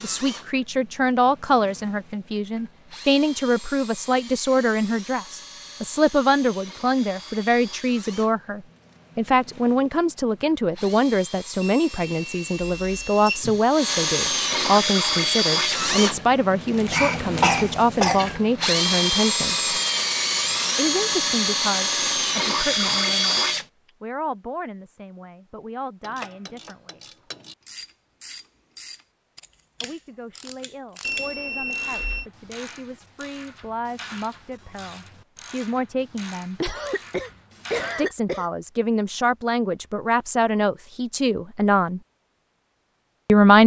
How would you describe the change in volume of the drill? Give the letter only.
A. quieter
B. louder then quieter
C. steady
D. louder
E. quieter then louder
D.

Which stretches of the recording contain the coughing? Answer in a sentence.
The coughing can be heard from 16.8 to 18.4 s and from 36.6 to 38.5 s.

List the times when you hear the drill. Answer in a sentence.
The drill can be heard from 0.0 to 23.6 s.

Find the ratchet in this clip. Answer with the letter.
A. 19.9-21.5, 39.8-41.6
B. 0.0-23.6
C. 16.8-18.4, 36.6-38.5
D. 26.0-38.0
D.